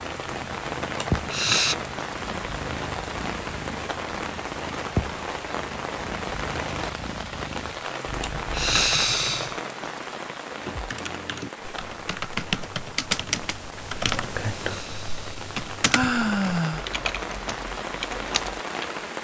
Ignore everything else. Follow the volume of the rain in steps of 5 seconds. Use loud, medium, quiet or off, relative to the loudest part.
loud, loud, medium, loud.